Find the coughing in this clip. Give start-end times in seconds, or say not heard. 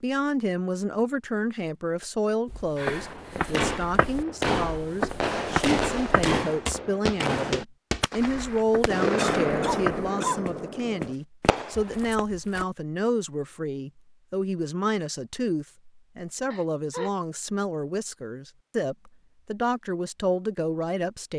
2.8-3.7, 9.2-10.4, 16.5-17.1.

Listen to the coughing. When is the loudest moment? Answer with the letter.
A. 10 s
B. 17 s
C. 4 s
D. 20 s
A.